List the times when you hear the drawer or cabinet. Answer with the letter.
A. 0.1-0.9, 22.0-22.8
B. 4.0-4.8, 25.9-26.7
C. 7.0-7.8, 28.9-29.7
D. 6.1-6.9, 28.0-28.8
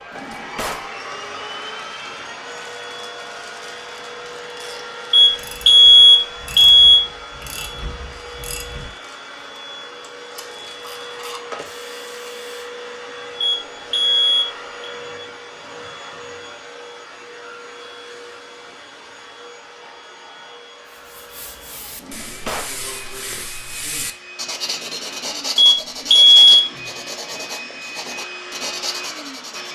A.